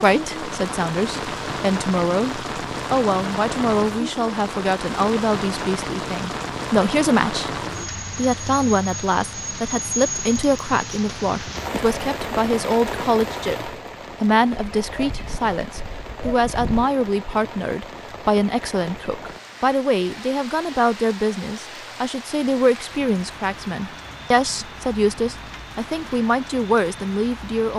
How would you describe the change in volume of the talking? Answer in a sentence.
The volume of the talking stays about the same.